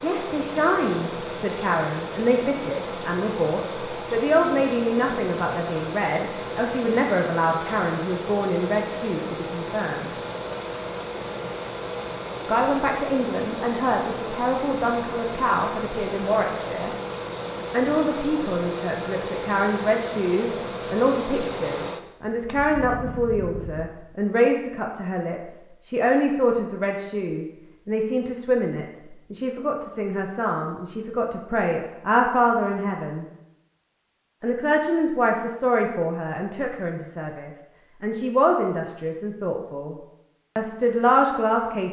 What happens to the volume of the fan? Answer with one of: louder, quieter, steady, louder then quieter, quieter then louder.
steady.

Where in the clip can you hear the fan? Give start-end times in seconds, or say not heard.
0.0-23.9.